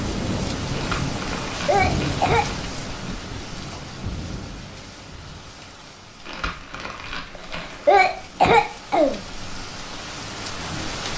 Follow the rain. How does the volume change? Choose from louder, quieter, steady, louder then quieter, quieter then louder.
quieter then louder.